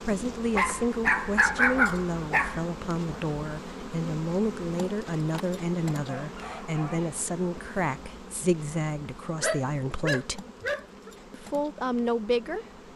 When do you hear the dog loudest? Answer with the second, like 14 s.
2 s.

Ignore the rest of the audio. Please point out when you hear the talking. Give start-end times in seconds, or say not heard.
0.0-10.4, 11.3-12.7.